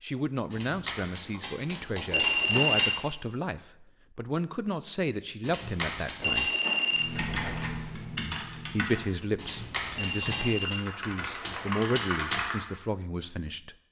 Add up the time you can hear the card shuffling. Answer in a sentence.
The card shuffling can be heard for 5 seconds in total.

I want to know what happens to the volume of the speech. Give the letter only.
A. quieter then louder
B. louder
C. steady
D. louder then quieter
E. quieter
C.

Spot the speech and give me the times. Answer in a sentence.
You can hear the speech from 0.0 to 6.5 s and from 8.7 to 13.8 s.